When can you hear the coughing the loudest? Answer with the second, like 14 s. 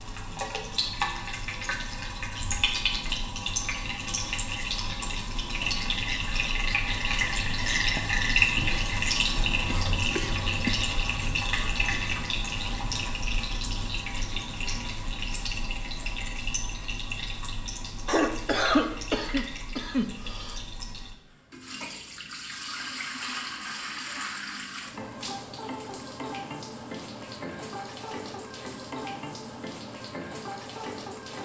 19 s.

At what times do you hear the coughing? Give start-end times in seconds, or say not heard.
9.7-10.8, 18.1-20.6.